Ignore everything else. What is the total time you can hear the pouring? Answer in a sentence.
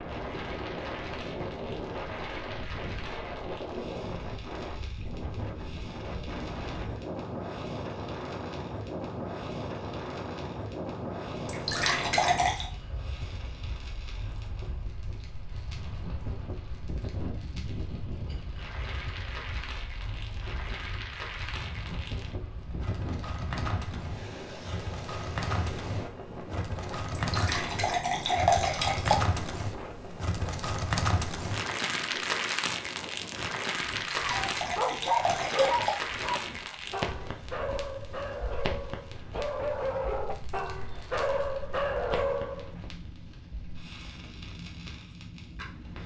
The pouring can be heard for 5 seconds in total.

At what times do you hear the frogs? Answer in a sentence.
The frogs can't be heard in this clip.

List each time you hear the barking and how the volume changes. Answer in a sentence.
The barking can be heard from 34.1 to 42.8 s, getting quieter then louder.